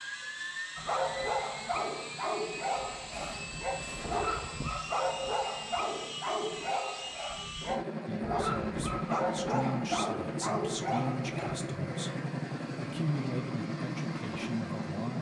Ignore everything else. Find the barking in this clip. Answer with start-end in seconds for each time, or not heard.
0.8-11.6.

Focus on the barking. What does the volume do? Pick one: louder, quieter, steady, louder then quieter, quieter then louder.
steady.